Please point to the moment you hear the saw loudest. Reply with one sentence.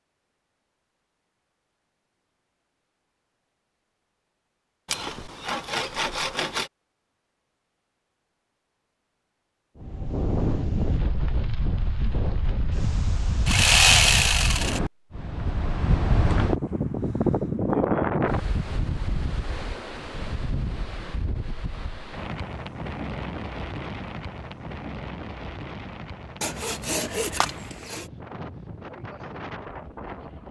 The loudest moment of the saw is at 14 seconds.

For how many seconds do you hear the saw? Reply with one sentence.
The saw can be heard for 5 seconds in total.